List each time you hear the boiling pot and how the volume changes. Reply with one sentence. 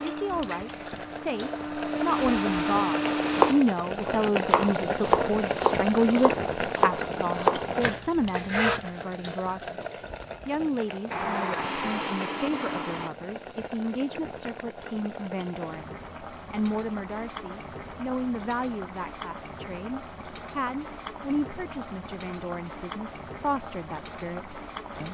You can hear the boiling pot from 0.0 to 25.0 s, getting quieter.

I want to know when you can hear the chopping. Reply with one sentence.
The chopping can be heard from 3.3 to 8.8 s.